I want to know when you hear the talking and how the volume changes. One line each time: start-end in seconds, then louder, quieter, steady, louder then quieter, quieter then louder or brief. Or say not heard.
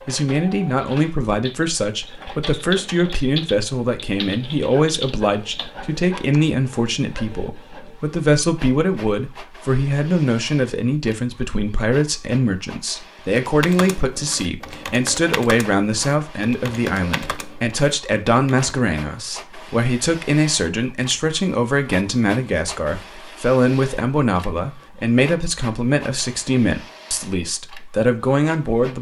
0.1-28.9 steady.